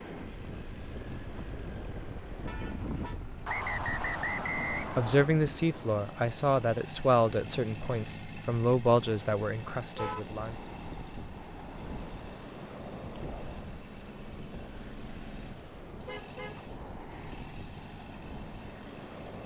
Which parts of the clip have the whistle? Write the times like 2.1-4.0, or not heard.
3.5-5.3.